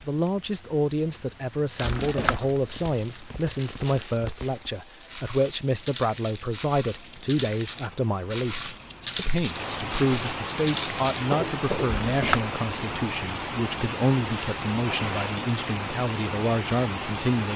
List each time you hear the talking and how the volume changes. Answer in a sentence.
The talking can be heard from 0.1 to 17.5 s, at a steady volume.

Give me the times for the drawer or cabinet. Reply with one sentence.
You can hear the drawer or cabinet from 1.8 to 2.5 s and from 11.8 to 12.5 s.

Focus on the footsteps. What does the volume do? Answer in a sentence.
The loudness of the footsteps goes up.